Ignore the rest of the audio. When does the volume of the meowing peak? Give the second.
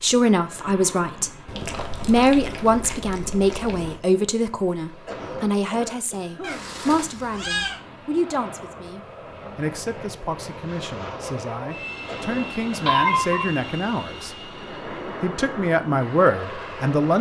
13 s.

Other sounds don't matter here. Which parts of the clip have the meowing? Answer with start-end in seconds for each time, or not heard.
1.4-4.0, 6.4-7.8, 12.8-13.4.